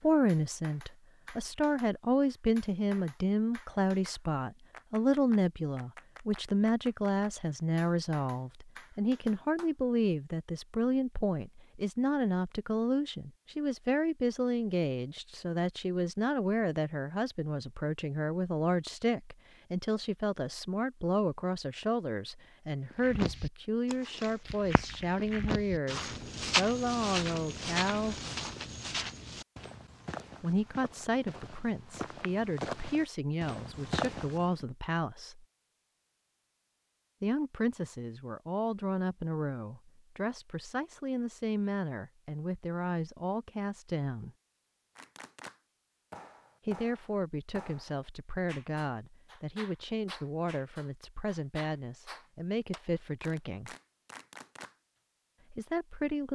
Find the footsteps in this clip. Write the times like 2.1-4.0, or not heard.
22.9-34.6.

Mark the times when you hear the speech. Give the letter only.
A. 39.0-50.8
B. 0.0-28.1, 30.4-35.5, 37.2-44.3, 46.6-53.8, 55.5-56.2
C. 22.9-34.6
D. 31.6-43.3
B.